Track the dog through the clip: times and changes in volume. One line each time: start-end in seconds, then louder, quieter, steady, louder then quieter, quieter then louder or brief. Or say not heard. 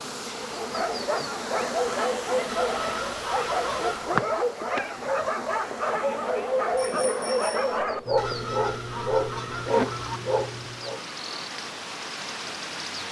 0.3-11.0 steady.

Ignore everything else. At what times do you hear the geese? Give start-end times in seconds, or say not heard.
2.5-4.2, 8.2-10.2.